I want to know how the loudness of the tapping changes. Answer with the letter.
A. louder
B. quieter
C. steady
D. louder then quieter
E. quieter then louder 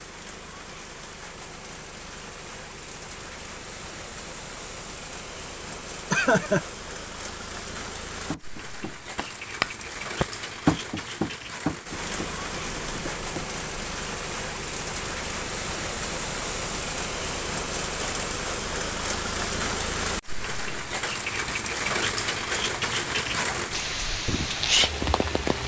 D.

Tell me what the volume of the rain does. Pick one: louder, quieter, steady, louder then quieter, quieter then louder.
louder.